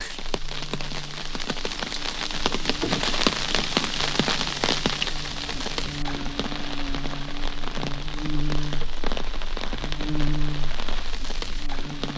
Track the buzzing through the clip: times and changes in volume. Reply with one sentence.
You can hear the buzzing from 0.2 to 12.1 s, getting louder.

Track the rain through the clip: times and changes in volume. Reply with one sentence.
The rain can be heard from 0.0 to 12.1 s, getting louder then quieter.